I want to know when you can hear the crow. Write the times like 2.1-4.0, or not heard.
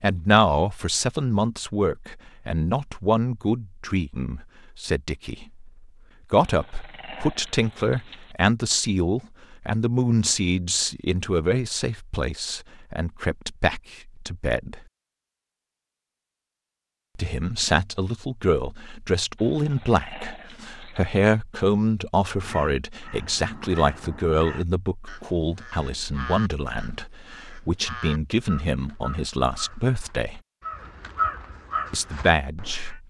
22.2-33.0.